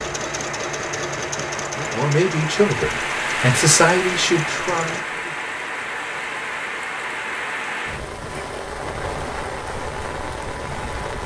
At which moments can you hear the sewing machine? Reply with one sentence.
The sewing machine can be heard from 0.0 to 5.0 s.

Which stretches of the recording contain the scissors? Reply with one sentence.
You can't hear the scissors here.